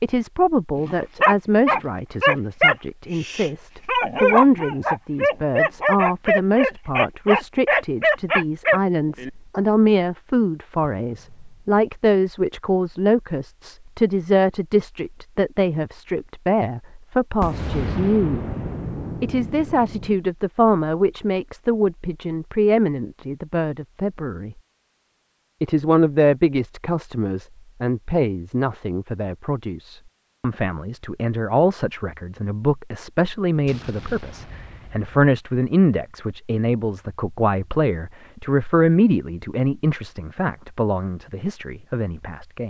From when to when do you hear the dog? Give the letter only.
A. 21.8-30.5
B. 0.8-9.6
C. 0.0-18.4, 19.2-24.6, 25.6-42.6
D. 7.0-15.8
B.